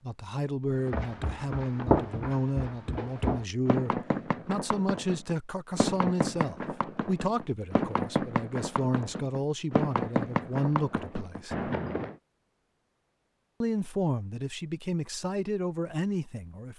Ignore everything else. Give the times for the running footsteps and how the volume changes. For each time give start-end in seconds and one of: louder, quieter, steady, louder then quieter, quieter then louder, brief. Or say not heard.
0.7-12.2 steady.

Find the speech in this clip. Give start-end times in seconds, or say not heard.
0.0-11.7, 13.6-16.7.